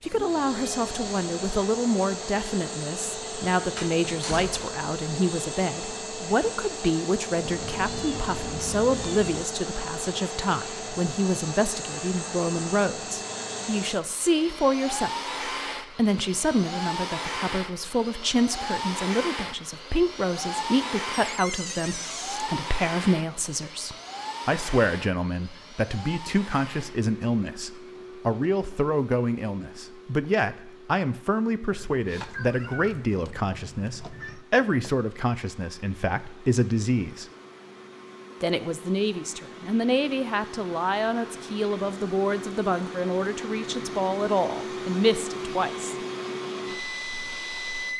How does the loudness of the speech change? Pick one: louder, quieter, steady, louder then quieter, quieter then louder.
steady.